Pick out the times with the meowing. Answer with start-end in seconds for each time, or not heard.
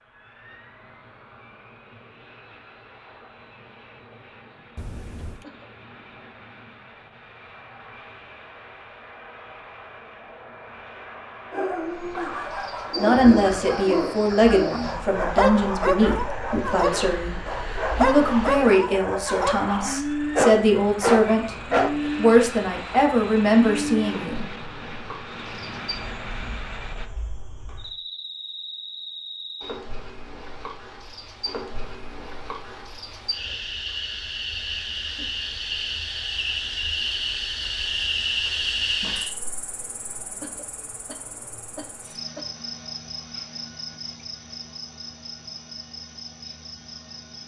4.8-5.5.